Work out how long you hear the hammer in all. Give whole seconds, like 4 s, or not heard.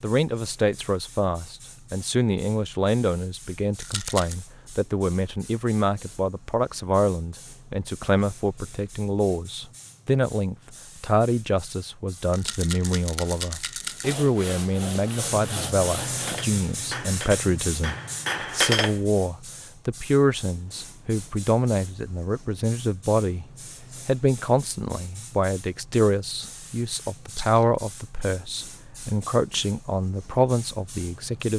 3 s.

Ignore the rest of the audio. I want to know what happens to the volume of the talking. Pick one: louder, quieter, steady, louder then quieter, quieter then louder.
steady.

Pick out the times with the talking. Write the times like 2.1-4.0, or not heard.
0.0-31.5.